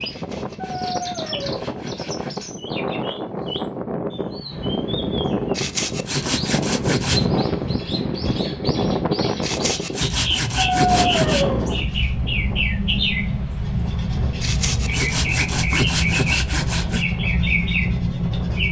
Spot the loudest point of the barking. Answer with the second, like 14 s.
11 s.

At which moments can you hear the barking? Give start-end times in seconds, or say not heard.
0.6-1.6, 10.6-11.8.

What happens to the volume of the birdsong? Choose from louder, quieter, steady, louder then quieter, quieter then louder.
louder.